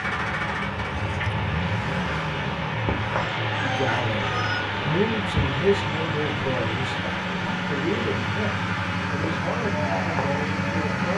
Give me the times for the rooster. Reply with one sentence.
The rooster can be heard from 3.1 to 4.7 s.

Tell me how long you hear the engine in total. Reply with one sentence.
The engine can be heard for 11 seconds in total.